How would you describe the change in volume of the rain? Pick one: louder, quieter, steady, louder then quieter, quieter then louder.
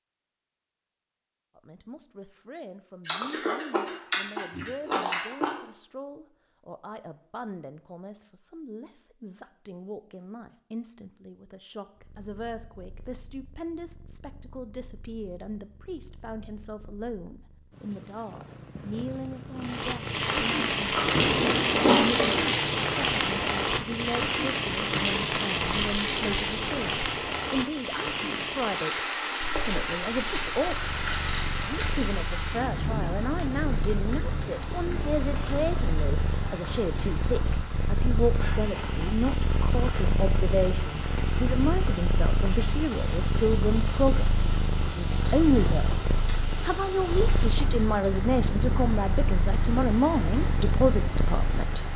quieter.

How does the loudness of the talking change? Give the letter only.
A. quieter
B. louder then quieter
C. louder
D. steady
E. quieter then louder
C.